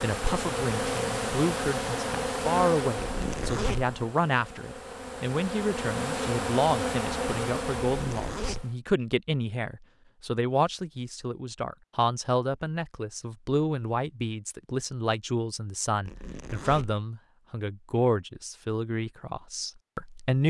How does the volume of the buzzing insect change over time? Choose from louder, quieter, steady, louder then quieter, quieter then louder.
quieter then louder.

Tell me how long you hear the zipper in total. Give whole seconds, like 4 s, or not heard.
3 s.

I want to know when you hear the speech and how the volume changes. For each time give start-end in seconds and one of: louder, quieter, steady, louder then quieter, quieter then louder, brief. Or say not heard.
0.0-20.4 steady.